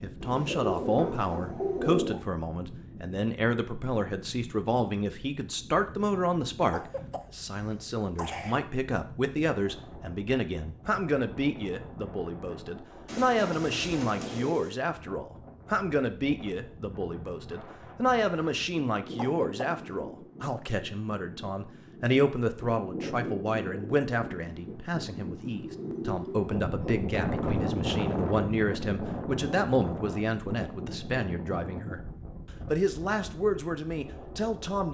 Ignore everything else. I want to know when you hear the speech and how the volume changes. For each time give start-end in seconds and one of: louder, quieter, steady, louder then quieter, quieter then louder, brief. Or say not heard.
0.0-32.0 steady
32.6-34.8 brief.